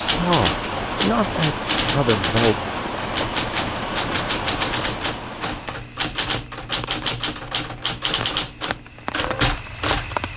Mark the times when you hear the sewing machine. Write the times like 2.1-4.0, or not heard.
not heard.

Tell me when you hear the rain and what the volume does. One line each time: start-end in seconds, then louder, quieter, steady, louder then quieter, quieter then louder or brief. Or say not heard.
0.0-10.3 quieter then louder.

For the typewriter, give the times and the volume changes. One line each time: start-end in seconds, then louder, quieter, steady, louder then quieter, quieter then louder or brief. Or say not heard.
0.1-10.2 steady.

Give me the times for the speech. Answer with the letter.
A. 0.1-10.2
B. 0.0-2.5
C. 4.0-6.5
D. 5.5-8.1
B.